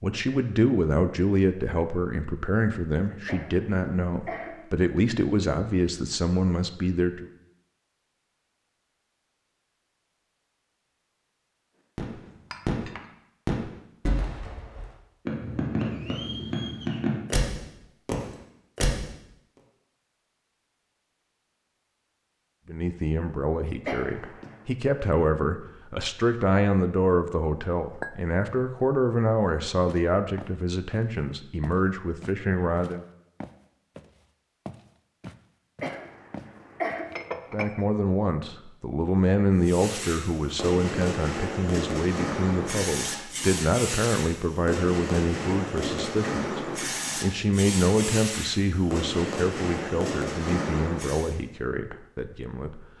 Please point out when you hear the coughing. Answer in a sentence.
You can hear the coughing from 3.2 to 4.6 s, from 23.9 to 24.6 s and from 35.8 to 37.1 s.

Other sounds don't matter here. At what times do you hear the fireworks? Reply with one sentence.
The fireworks can be heard from 11.9 to 19.1 s and from 39.6 to 51.4 s.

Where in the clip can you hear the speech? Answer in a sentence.
You can hear the speech from 0.0 to 7.3 s, from 22.6 to 33.0 s and from 37.5 to 52.8 s.